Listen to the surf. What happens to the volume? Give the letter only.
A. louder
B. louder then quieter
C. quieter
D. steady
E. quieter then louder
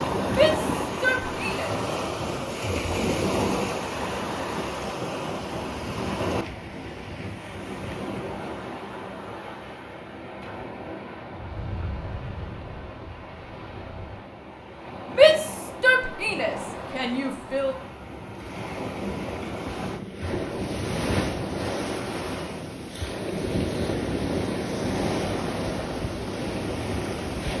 E.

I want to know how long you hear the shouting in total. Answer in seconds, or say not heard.
4 s.